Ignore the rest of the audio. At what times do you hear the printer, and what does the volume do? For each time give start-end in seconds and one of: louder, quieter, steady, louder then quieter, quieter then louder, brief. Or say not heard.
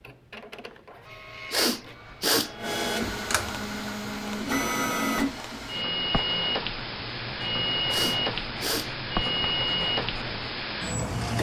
0.0-11.3 louder.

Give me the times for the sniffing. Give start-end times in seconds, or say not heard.
1.5-2.5, 7.9-8.9.